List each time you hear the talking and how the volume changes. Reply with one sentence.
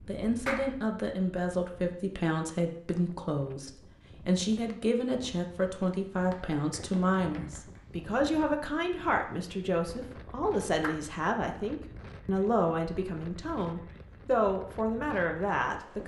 You can hear the talking from 0.1 to 16.0 s, at a steady volume.